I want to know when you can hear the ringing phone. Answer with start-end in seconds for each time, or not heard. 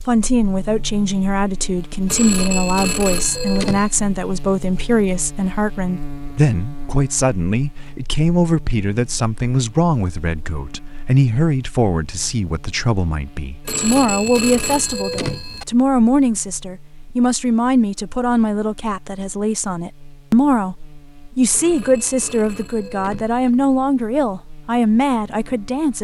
2.0-3.9, 13.7-15.7, 21.5-23.5.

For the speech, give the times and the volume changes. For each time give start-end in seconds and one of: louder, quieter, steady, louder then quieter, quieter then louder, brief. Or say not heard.
0.1-26.0 steady.